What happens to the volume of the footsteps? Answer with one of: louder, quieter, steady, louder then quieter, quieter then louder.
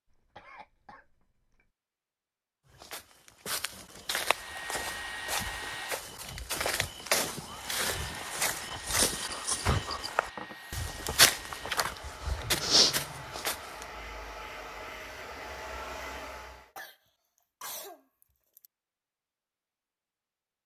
louder.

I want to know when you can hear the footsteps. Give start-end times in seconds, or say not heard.
2.7-13.8.